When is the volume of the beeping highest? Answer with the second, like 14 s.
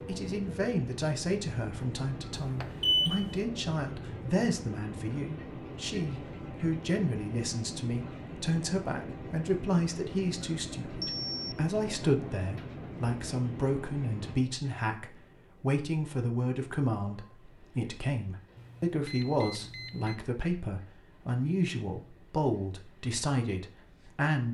3 s.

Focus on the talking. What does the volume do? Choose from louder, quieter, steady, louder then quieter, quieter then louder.
steady.